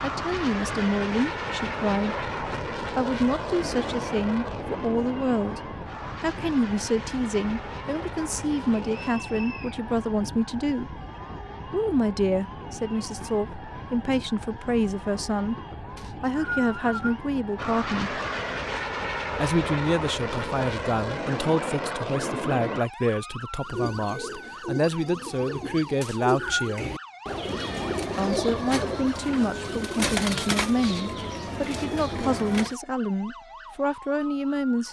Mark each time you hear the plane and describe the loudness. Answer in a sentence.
The plane can be heard from 0.0 to 9.2 s, getting quieter; and from 17.6 to 22.8 s, at a steady volume.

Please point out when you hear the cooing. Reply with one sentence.
You can hear the cooing from 23.6 to 32.8 s.